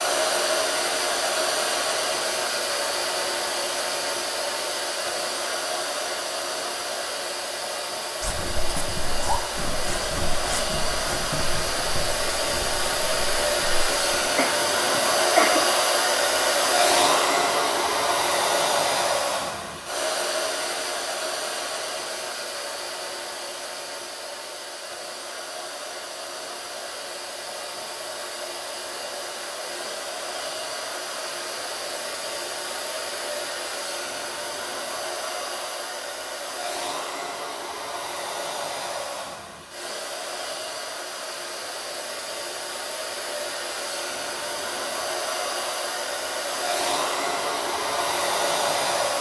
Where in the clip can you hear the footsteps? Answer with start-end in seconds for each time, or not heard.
8.2-14.2.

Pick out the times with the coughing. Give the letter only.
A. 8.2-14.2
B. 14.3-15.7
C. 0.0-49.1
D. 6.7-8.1
B.